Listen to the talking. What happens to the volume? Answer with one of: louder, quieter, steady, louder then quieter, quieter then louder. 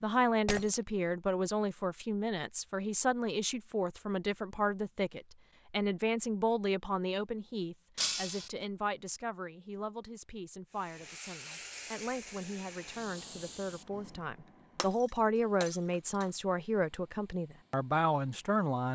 quieter then louder.